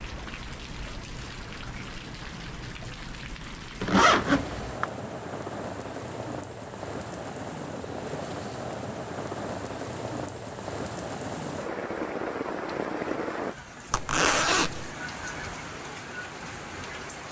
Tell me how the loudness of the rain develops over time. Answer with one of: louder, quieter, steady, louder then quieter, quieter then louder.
louder then quieter.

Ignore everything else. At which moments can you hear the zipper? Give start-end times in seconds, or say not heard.
3.8-4.8, 13.9-14.9.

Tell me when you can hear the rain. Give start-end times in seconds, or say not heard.
0.0-17.2.